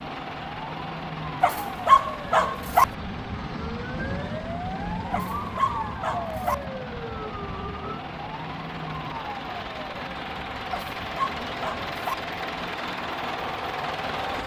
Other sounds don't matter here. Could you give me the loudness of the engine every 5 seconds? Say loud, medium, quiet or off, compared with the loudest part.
medium, medium, loud.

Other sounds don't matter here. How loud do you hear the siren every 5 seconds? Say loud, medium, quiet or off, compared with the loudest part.
loud, loud, medium.